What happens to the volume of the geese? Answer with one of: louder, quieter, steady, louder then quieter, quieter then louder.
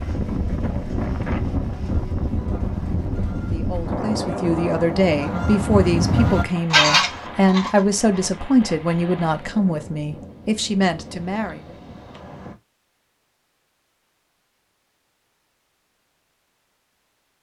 louder.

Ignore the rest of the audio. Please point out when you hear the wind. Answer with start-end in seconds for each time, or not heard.
0.0-12.6.